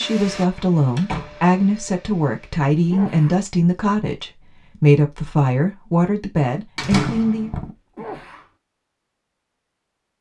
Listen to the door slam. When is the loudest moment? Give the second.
7 s.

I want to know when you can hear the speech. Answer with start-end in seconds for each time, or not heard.
0.0-7.5.